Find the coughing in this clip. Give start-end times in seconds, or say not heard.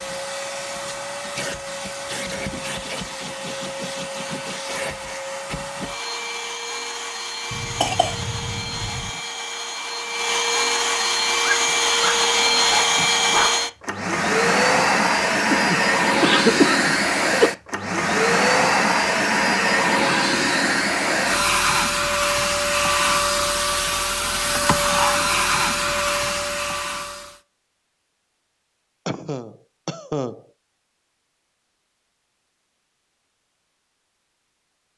7.5-9.1, 15.5-17.5, 29.1-30.4.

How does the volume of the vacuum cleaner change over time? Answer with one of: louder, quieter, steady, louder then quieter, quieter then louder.
louder.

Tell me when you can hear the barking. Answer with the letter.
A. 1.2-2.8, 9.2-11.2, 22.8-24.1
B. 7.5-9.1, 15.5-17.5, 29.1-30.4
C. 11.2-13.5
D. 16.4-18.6
C.